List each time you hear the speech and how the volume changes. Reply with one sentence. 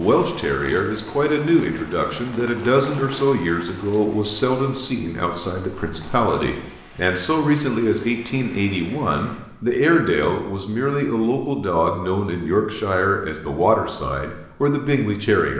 The speech can be heard from 0.0 to 15.5 s, at a steady volume.